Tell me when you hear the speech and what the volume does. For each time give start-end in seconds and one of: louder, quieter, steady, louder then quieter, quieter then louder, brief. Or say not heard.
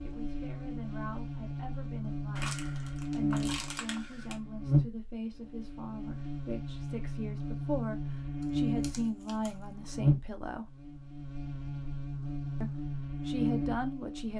0.0-10.7 louder
12.6-14.3 brief.